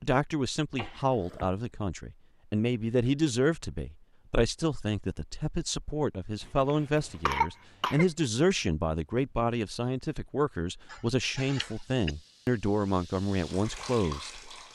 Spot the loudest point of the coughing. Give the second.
7 s.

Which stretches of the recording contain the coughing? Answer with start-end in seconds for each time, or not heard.
0.8-1.6, 6.4-8.1, 10.9-12.2.